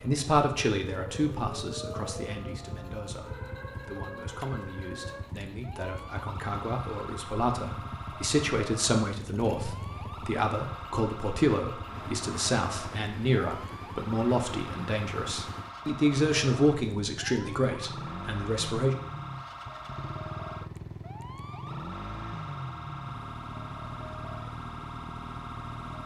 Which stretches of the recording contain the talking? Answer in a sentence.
You can hear the talking from 0.0 to 18.9 s.